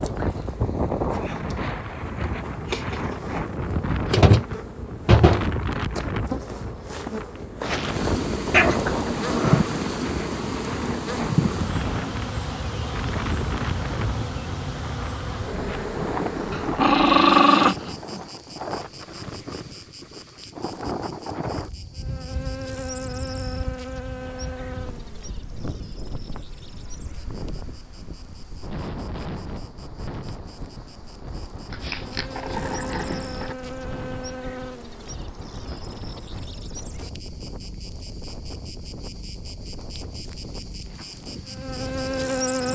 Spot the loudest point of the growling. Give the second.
17 s.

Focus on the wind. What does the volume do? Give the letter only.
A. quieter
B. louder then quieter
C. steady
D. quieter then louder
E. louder
A.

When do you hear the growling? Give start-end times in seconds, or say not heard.
8.5-9.7, 16.5-18.2, 31.7-33.5.